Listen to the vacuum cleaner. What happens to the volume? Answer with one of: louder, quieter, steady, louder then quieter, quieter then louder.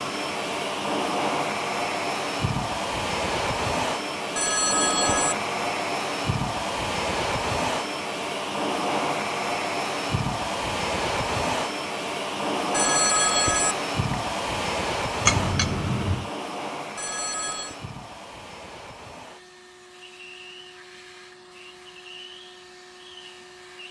quieter.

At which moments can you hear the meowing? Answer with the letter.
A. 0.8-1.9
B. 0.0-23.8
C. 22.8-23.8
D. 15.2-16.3
D.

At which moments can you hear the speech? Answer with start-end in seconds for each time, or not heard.
not heard.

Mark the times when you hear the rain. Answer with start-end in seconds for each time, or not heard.
not heard.